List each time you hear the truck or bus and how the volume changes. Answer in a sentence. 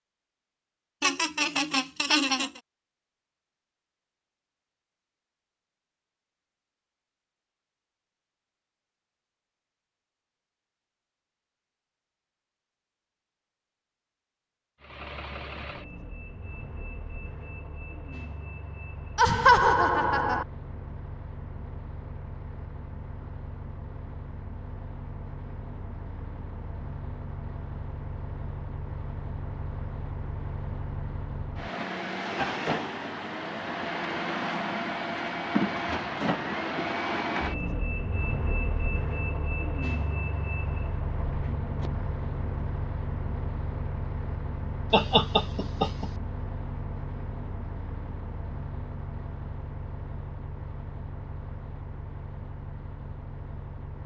You can hear the truck or bus from 14.8 to 54.0 s, getting louder then quieter.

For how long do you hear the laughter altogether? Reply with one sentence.
The laughter can be heard for 4 seconds in total.